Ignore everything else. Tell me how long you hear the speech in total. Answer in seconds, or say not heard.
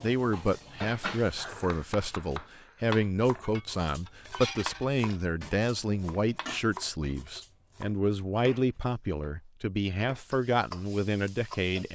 12 s.